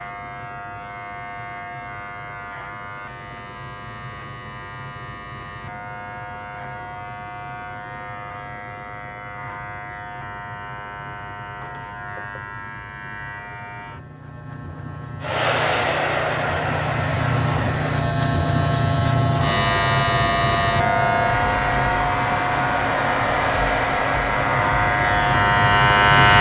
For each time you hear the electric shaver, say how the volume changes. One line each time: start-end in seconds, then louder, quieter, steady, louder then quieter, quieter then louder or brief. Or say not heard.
0.0-26.3 louder.